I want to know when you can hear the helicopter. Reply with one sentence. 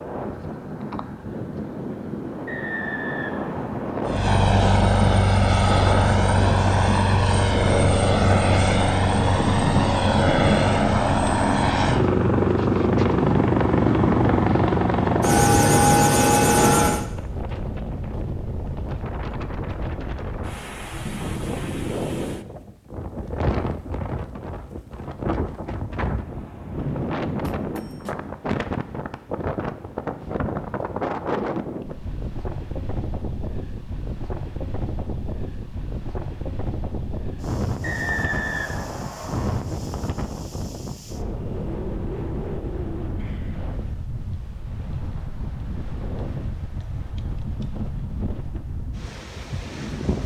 You can hear the helicopter from 4.0 to 17.1 s.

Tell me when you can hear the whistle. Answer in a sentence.
You can hear the whistle from 2.5 to 4.1 s and from 37.8 to 39.6 s.